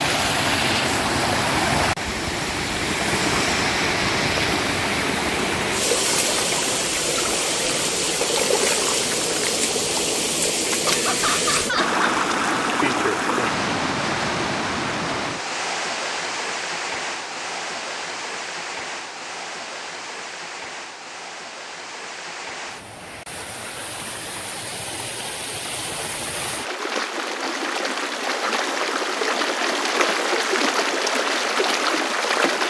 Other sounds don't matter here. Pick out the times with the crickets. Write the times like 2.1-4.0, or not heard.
not heard.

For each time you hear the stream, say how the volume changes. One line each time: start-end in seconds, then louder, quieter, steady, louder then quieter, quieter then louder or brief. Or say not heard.
0.0-32.6 quieter then louder.